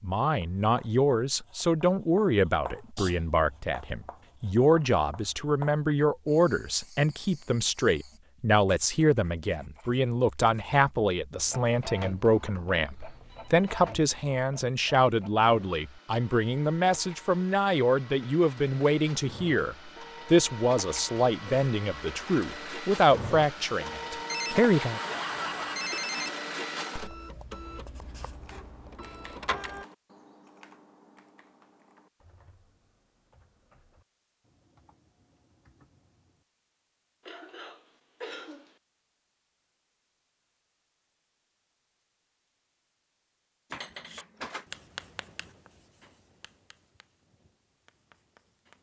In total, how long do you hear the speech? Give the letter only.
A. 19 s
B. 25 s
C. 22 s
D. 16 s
B.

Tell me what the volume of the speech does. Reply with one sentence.
The loudness of the speech stays about the same.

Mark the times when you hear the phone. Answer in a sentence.
You can hear the phone from 13.2 to 13.7 s, from 24.2 to 26.3 s and from 43.7 to 44.8 s.